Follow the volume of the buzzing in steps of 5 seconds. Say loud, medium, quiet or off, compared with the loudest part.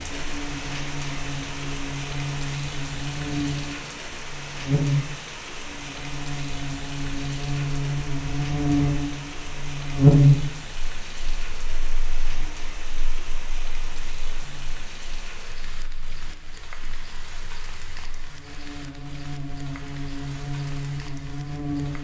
medium, medium, loud, quiet, medium.